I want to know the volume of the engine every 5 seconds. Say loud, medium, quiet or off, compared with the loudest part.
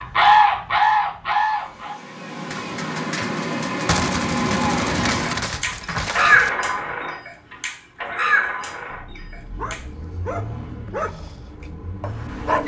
loud, loud, medium.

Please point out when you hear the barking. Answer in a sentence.
You can hear the barking from 9.6 to 11.3 s and from 12.0 to 12.6 s.